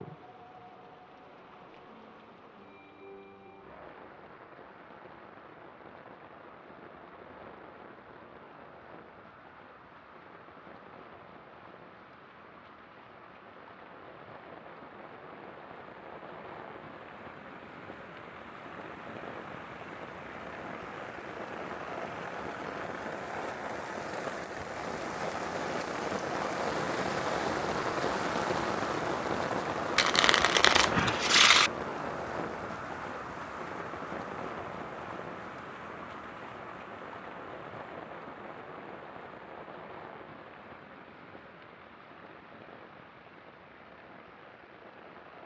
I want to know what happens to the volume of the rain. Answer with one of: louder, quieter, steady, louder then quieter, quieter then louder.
louder then quieter.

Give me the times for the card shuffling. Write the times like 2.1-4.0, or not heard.
29.9-31.7.